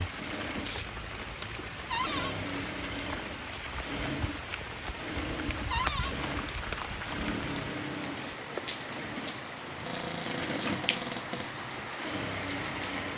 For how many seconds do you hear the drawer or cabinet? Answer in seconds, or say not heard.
3 s.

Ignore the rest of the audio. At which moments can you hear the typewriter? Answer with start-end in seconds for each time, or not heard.
not heard.